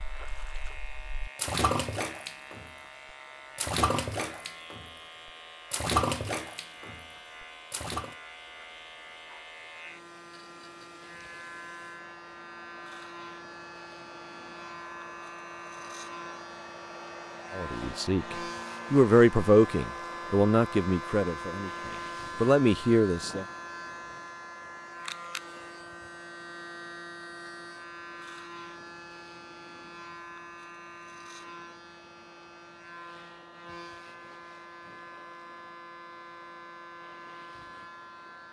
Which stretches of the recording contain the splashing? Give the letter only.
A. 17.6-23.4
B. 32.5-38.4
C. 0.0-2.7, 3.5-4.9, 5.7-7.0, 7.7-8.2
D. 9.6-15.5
C.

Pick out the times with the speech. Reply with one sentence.
You can hear the speech from 17.6 to 23.4 s.